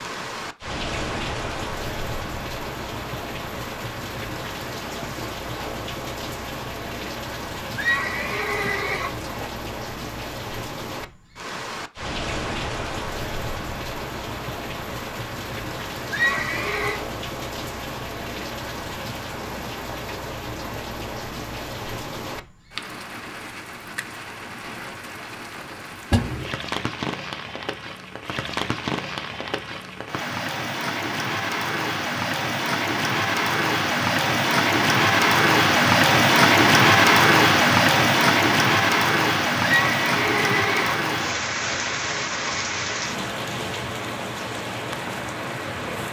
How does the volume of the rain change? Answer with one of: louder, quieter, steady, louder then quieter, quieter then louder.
louder.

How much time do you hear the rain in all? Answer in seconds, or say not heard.
46 s.